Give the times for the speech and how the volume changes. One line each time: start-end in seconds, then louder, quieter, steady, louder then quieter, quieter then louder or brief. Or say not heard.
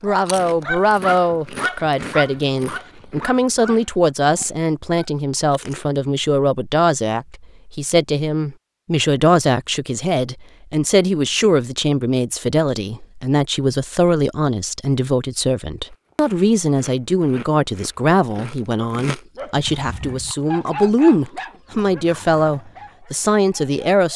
0.0-24.1 steady.